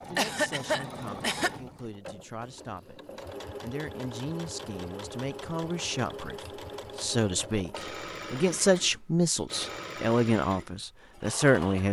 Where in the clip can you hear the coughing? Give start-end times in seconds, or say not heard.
0.1-1.5.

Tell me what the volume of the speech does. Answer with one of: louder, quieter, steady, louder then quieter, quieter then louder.
louder.